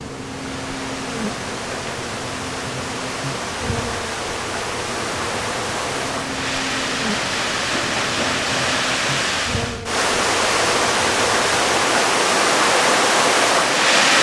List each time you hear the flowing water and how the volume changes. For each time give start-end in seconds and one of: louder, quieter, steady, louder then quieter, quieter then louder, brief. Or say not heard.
0.0-14.1 louder.